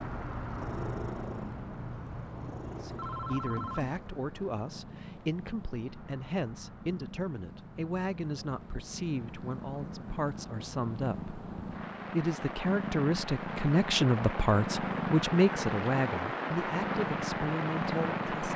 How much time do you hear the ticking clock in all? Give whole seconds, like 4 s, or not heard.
not heard.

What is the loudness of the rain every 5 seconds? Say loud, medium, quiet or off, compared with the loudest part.
medium, quiet, medium, loud.